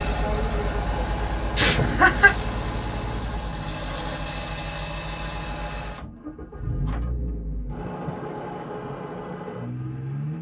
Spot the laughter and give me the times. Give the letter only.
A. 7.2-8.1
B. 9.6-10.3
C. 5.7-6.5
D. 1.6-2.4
D.